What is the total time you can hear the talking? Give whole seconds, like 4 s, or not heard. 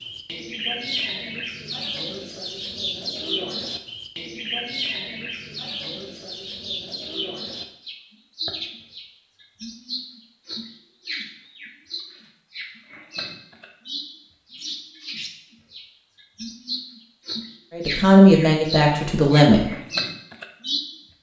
2 s.